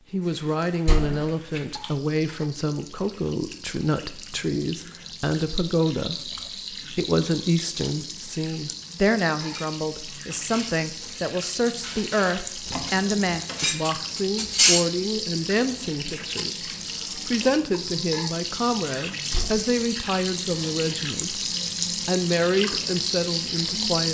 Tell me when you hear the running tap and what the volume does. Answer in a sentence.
You can hear the running tap from 0.0 to 24.0 s, getting louder.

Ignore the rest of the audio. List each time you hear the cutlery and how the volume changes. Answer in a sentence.
You can hear the cutlery from 9.4 to 14.8 s, getting quieter then louder.